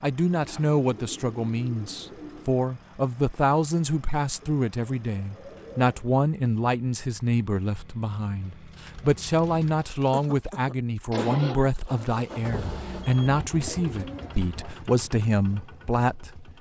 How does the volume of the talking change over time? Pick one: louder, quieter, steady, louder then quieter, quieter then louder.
steady.